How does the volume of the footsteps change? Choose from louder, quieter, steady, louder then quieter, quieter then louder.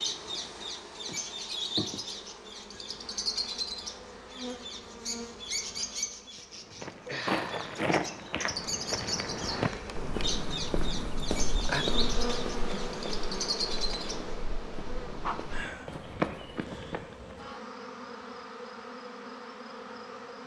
quieter then louder.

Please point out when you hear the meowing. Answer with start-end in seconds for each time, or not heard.
not heard.